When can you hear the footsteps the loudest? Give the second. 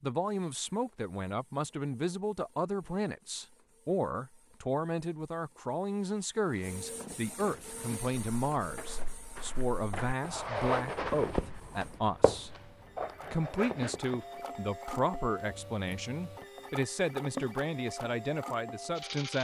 11 s.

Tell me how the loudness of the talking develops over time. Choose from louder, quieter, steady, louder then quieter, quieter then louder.
steady.